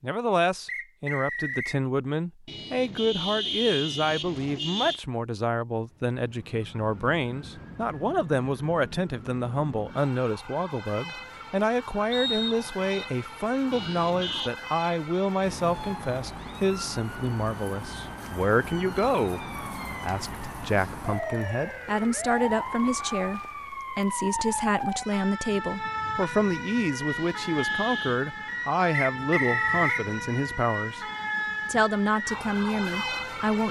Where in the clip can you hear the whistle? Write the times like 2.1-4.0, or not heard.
0.7-1.8, 12.1-12.9, 29.1-30.1.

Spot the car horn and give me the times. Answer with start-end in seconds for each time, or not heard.
2.5-5.0, 13.7-14.5, 27.1-28.2.